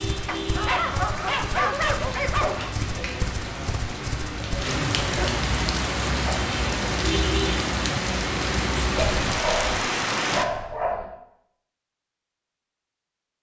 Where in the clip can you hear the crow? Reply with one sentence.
You can't hear the crow here.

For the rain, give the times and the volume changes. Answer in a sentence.
The rain can be heard from 0.0 to 10.4 s, getting louder.